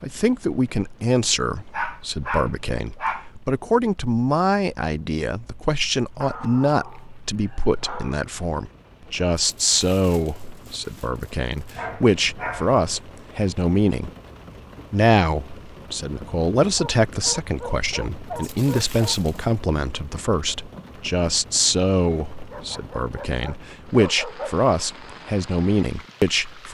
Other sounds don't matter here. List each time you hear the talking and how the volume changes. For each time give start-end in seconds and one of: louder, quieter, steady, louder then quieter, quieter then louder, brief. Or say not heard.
0.0-14.1 steady
14.9-26.6 steady.